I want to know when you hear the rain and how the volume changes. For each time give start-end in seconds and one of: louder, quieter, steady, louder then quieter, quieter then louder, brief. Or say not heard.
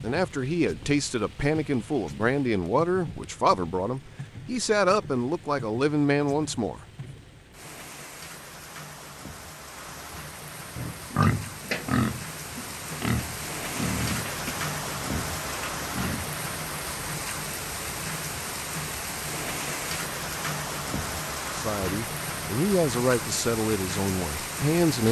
0.0-25.0 louder.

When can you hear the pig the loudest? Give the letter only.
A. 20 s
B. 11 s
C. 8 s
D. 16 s
B.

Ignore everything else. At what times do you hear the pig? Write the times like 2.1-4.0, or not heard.
10.8-16.4.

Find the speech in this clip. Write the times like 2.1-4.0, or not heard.
0.0-6.8, 21.5-25.0.